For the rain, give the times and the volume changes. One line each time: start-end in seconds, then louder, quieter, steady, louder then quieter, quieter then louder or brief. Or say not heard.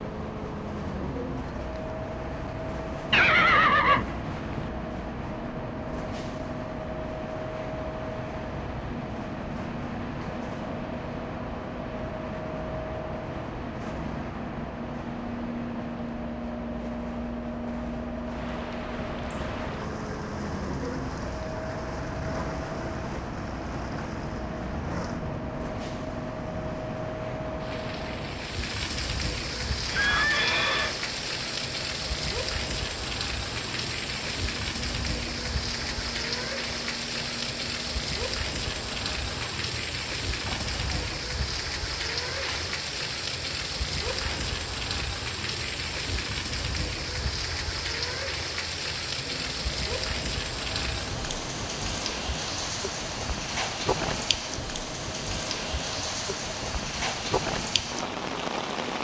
18.2-58.9 louder.